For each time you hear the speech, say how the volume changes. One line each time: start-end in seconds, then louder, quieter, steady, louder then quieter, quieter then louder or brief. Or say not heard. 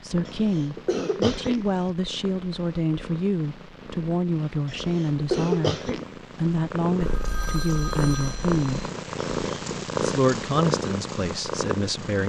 0.0-8.8 steady
10.0-12.2 brief.